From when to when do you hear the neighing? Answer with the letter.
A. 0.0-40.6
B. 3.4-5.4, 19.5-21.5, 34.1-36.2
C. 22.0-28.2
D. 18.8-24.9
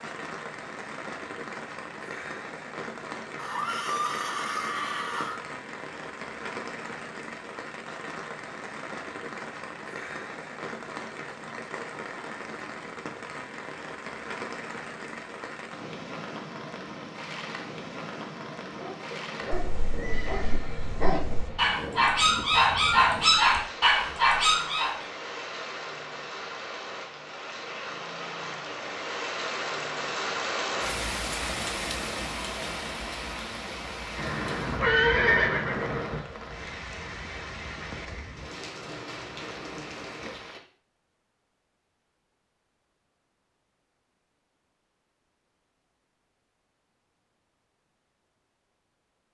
B.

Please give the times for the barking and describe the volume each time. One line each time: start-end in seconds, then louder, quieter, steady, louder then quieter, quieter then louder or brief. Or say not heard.
18.8-24.9 louder.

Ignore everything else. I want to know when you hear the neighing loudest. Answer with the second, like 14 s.
35 s.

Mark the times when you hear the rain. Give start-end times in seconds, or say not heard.
0.0-40.6.